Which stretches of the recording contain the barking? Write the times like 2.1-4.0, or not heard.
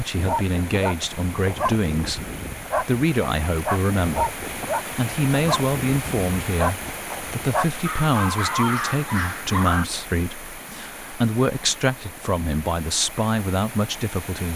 0.1-9.8.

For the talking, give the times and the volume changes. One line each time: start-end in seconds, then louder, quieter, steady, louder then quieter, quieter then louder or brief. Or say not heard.
0.0-14.5 steady.